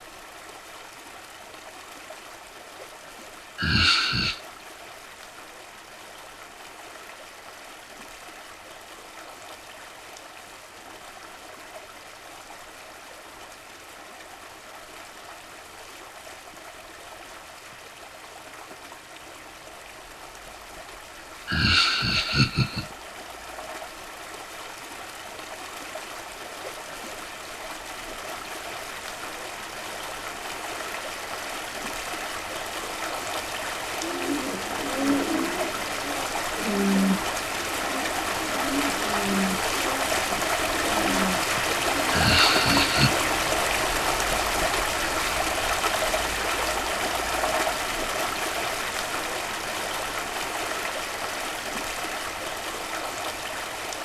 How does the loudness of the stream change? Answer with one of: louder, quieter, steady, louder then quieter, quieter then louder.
louder.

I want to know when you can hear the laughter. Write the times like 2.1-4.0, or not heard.
3.5-4.4, 21.4-22.9, 42.1-43.1.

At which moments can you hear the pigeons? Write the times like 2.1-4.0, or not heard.
34.0-42.9.